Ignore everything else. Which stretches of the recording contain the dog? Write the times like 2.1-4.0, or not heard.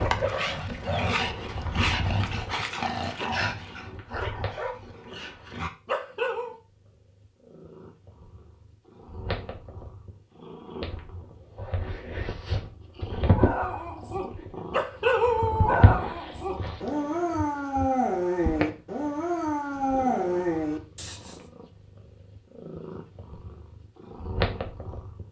0.0-6.5, 13.2-21.4.